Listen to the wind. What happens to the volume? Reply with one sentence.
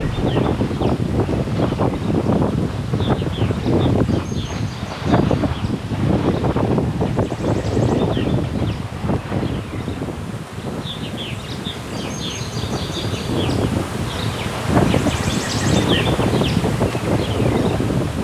The loudness of the wind goes down, then up.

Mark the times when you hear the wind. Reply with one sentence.
The wind can be heard from 0.0 to 18.1 s.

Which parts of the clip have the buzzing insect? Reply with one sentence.
The buzzing insect can be heard from 0.0 to 18.1 s.